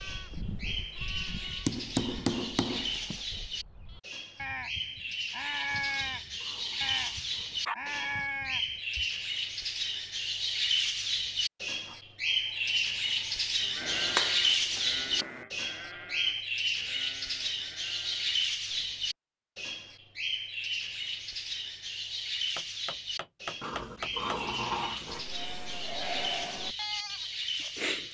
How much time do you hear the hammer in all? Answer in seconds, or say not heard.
5 s.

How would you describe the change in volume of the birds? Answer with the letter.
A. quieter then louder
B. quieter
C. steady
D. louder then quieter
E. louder
D.